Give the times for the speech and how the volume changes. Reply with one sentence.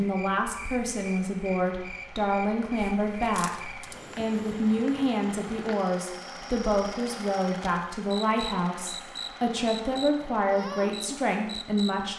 The speech can be heard from 0.0 to 12.1 s, at a steady volume.